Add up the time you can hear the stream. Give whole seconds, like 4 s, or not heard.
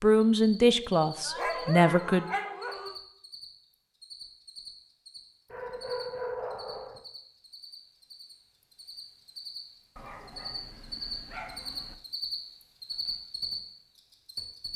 not heard.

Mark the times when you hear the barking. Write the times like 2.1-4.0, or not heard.
1.2-3.0, 5.5-7.0, 9.9-11.9.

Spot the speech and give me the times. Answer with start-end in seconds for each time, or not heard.
0.0-2.2.